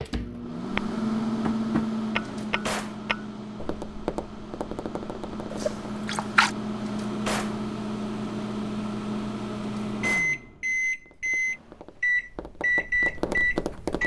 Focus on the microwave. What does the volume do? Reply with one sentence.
The volume of the microwave goes down, then up.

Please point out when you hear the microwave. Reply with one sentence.
The microwave can be heard from 0.1 to 14.0 s.